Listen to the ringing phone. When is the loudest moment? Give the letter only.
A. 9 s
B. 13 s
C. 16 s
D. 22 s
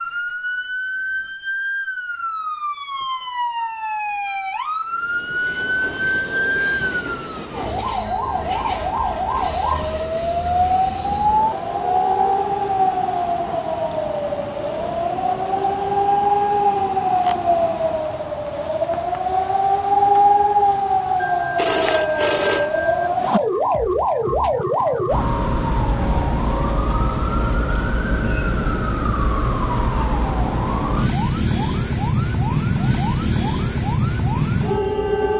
D.